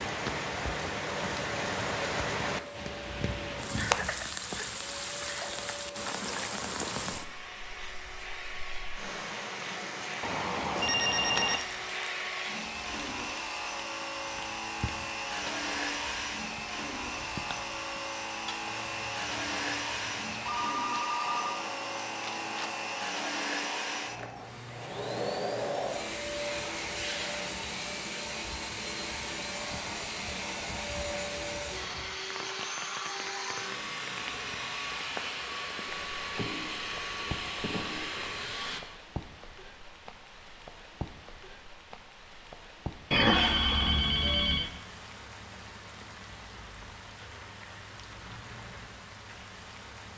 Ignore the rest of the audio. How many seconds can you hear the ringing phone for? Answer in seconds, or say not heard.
5 s.